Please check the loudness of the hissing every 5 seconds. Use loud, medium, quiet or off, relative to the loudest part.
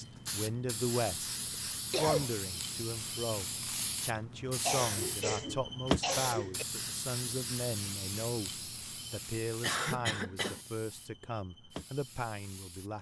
loud, loud, quiet.